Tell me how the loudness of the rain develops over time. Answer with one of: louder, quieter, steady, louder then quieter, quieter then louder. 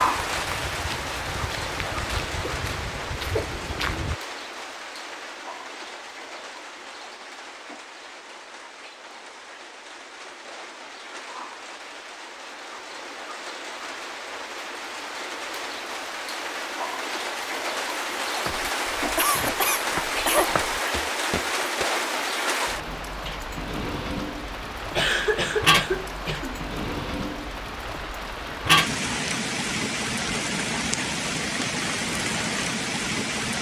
quieter then louder.